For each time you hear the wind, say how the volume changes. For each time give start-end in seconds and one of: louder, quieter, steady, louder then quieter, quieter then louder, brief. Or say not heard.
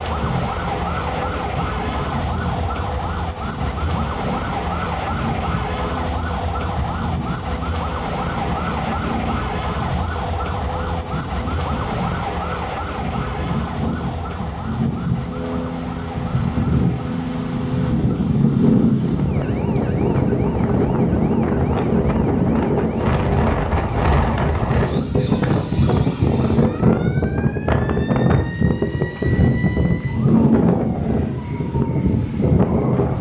0.0-33.1 louder.